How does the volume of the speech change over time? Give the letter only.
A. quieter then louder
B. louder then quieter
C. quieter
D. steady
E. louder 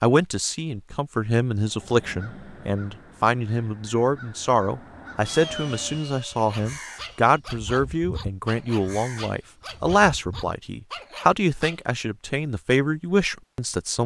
D.